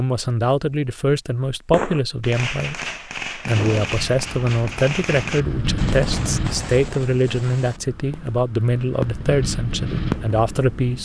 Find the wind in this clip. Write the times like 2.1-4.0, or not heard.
3.5-11.0.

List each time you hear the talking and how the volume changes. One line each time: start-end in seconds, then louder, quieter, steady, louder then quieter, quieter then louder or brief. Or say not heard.
0.0-11.0 steady.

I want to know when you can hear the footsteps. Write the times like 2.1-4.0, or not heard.
not heard.